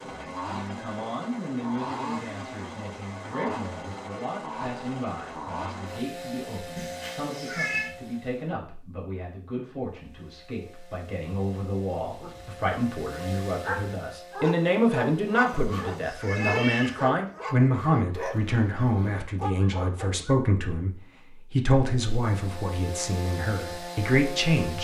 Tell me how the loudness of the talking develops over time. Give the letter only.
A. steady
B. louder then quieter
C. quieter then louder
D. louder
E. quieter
D.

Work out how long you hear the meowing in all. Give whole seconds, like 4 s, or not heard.
3 s.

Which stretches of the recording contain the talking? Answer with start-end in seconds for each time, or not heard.
0.0-24.7.